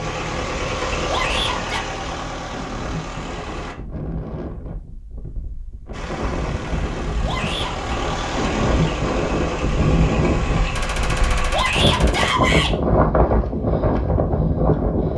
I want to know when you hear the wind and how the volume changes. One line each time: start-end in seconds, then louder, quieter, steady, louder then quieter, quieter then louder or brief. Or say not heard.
0.1-15.1 louder.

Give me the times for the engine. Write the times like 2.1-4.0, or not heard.
0.0-3.8, 5.9-11.7.